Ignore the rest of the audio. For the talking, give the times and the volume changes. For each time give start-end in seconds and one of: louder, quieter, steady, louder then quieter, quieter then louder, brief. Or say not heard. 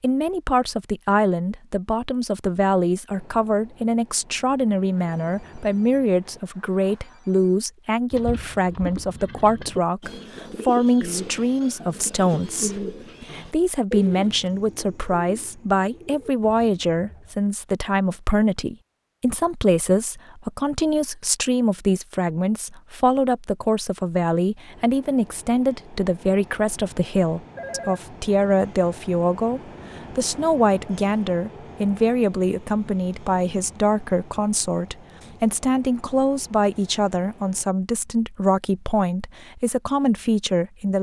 0.0-40.9 steady.